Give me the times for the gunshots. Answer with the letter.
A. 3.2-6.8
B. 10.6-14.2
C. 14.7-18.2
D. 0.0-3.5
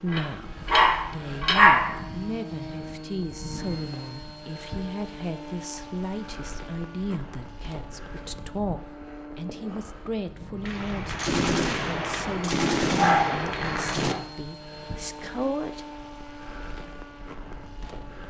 B.